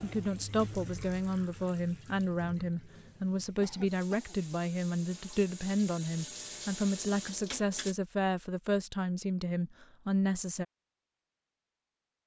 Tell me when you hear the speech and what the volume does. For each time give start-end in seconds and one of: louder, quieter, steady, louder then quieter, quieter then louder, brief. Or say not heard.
0.0-10.7 steady.